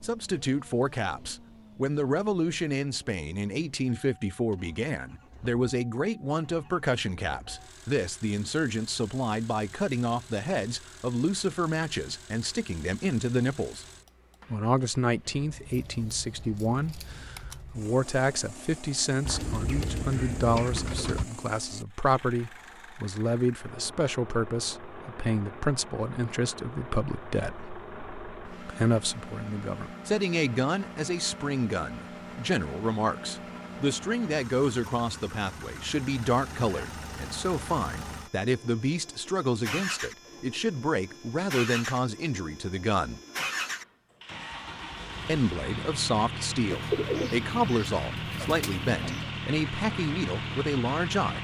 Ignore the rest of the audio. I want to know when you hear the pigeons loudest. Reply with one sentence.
The loudest moment of the pigeons is at 47 seconds.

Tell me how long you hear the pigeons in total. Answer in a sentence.
You can hear the pigeons for 5 seconds altogether.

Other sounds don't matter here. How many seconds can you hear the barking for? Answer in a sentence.
You can't hear the barking here.